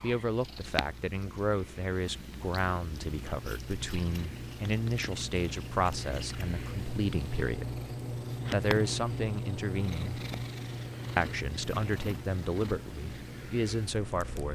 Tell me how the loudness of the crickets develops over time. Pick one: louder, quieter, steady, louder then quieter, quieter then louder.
louder then quieter.